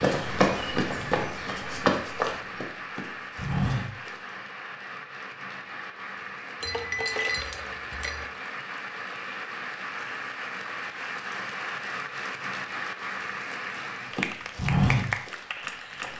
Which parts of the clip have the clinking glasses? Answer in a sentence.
The clinking glasses can be heard from 6.6 to 8.2 s.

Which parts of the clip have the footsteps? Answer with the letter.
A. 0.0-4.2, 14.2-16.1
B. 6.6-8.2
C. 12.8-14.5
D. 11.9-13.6
A.